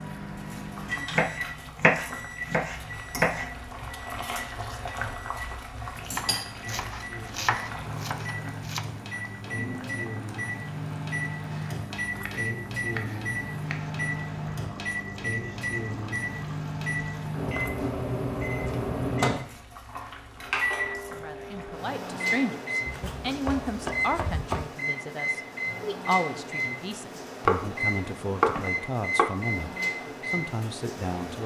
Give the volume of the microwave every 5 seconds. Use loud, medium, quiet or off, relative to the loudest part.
medium, medium, loud, loud, loud, loud, medium.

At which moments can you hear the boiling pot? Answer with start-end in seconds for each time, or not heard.
0.0-21.9.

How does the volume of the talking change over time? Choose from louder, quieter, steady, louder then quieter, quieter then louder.
steady.